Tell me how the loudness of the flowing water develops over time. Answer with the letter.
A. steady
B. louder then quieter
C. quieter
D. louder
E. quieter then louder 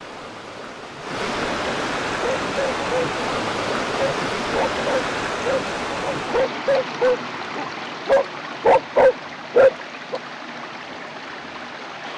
C.